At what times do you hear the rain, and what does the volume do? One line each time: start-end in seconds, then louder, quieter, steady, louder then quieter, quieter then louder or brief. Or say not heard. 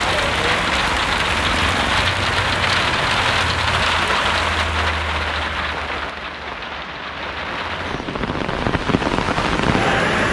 0.0-10.2 quieter then louder.